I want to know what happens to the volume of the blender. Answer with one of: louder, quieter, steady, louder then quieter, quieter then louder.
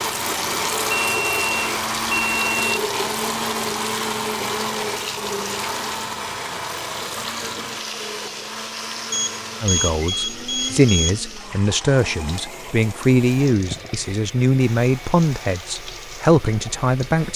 quieter.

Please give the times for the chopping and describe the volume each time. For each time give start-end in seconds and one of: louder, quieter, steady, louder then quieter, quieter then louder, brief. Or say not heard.
not heard.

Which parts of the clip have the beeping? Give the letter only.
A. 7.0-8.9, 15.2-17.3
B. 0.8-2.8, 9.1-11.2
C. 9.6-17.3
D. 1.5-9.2
B.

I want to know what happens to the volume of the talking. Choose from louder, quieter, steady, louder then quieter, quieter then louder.
steady.